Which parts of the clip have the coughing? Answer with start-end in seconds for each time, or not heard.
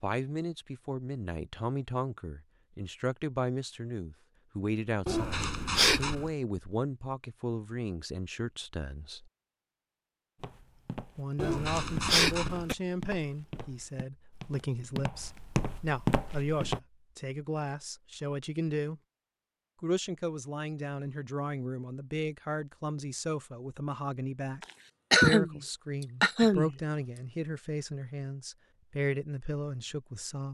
5.0-6.3, 11.3-12.8, 24.6-26.8.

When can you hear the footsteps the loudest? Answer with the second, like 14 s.
16 s.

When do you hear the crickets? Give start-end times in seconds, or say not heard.
not heard.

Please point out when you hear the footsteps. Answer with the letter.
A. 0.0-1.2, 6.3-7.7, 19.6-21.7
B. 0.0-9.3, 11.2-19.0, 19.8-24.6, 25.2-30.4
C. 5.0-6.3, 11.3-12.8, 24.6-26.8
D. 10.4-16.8
D.